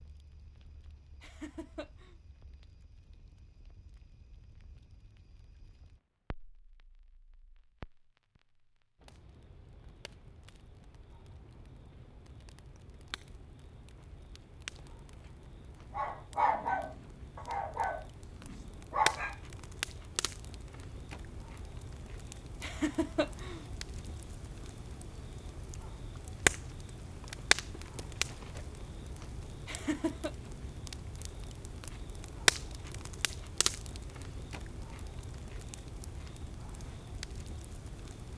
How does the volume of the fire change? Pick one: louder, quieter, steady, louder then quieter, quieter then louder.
louder.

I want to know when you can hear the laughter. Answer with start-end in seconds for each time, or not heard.
1.2-2.1, 22.6-23.6, 29.6-30.3.